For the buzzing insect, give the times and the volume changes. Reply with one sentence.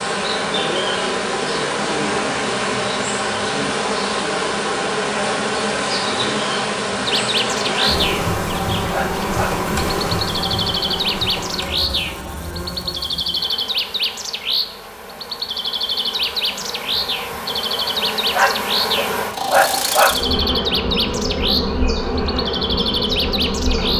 You can hear the buzzing insect from 0.0 to 23.9 s, getting quieter then louder.